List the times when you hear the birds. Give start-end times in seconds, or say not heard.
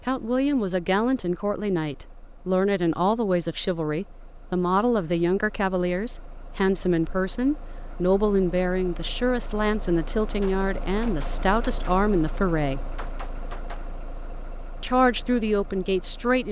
not heard.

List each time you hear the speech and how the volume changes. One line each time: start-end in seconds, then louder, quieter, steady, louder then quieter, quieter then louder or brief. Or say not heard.
0.0-12.9 steady
14.8-16.4 brief.